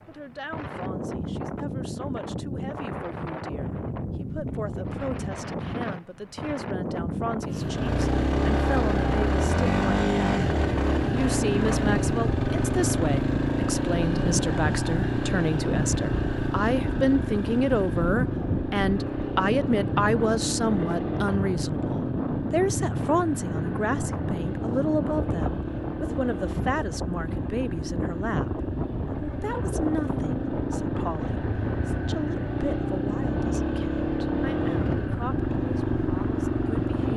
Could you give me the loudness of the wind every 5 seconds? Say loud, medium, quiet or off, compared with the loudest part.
loud, loud, loud, loud, loud, loud, loud, medium.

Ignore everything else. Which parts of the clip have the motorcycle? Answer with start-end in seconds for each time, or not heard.
7.5-37.1.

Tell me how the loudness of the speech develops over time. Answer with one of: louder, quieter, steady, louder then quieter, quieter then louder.
louder then quieter.